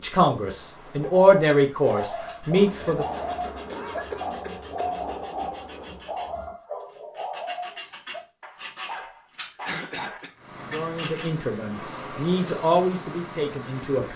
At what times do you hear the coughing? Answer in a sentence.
The coughing can be heard from 3.7 to 4.9 s and from 9.7 to 10.3 s.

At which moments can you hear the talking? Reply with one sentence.
You can hear the talking from 0.0 to 3.0 s and from 10.7 to 14.1 s.